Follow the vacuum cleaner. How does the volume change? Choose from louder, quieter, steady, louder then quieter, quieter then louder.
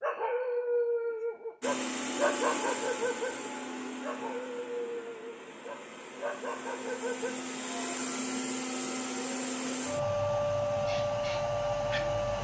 quieter then louder.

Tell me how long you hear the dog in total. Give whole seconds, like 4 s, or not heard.
9 s.